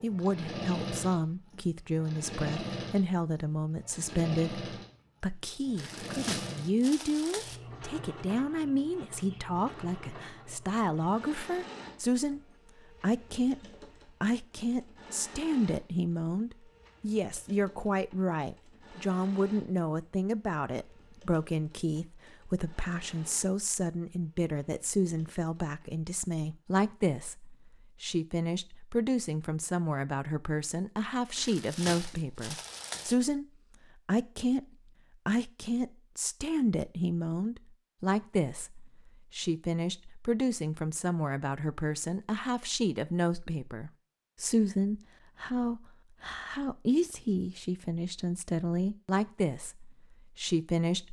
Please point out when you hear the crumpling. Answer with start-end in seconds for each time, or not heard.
5.8-7.6, 31.4-33.1.